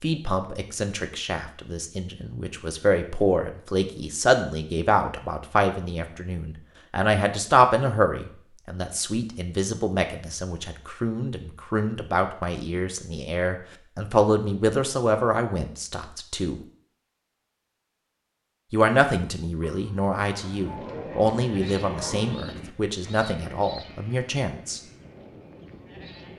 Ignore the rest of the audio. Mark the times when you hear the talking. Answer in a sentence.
The talking can be heard from 0.0 to 16.6 s and from 18.7 to 24.8 s.